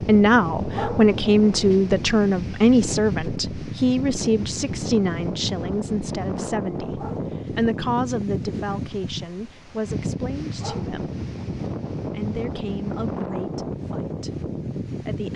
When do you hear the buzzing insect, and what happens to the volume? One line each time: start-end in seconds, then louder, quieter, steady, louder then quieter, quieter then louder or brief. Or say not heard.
not heard.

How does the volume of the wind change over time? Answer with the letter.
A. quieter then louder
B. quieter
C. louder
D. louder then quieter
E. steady
E.